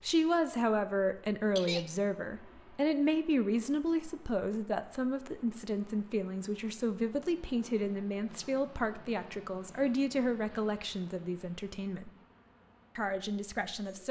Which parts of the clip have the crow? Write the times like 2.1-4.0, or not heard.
not heard.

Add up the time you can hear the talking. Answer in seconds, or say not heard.
13 s.